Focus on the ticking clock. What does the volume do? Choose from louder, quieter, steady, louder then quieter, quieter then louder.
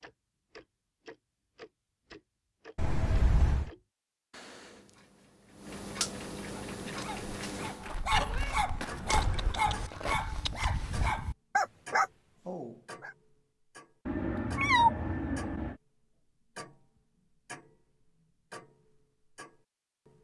louder then quieter.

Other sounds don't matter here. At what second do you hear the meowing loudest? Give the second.
15 s.